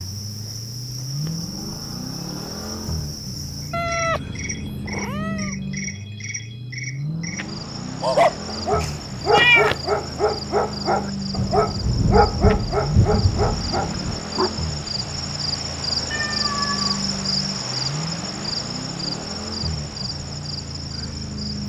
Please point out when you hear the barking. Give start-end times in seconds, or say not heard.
8.0-14.5.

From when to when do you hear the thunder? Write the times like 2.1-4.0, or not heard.
11.3-14.2.